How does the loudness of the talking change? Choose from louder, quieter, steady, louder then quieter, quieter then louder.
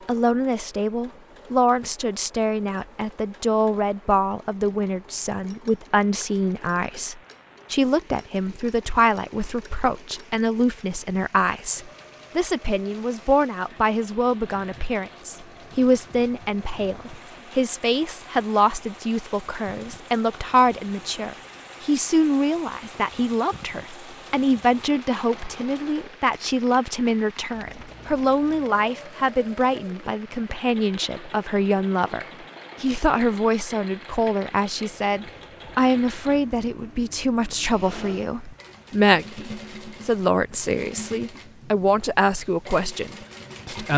steady.